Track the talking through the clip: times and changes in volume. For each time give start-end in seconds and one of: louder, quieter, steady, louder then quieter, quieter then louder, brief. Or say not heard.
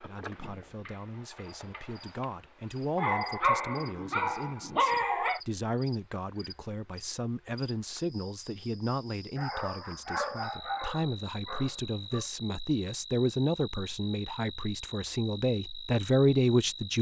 0.0-16.9 louder.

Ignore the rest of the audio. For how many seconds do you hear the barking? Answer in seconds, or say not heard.
5 s.